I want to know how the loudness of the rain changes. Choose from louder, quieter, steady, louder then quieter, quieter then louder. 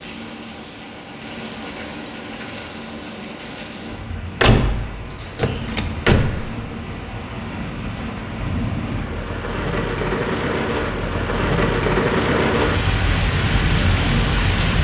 louder.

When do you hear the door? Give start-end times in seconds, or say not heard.
4.4-6.6.